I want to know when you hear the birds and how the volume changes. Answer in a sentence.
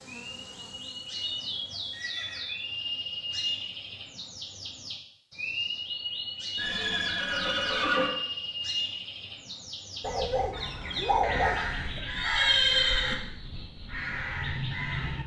You can hear the birds from 0.1 to 15.2 s, at a steady volume.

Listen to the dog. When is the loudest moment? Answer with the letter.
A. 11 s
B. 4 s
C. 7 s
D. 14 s
A.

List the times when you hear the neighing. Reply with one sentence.
The neighing can be heard from 1.9 to 2.5 s, from 6.5 to 8.1 s and from 11.3 to 13.2 s.